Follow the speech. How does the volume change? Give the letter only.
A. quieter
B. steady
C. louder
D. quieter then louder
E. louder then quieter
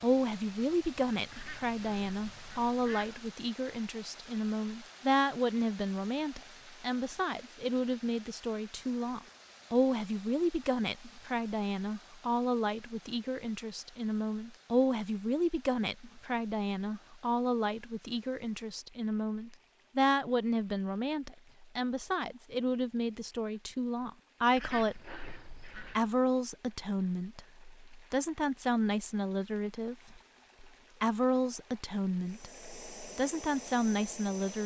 B.